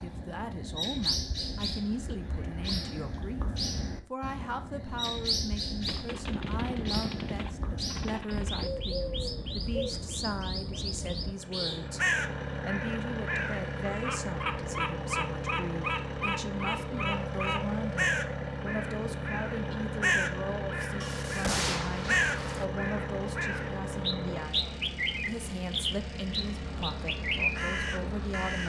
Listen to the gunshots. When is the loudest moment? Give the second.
22 s.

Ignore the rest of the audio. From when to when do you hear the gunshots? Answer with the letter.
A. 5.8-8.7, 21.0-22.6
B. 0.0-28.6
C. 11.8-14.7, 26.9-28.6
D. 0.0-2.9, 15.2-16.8
A.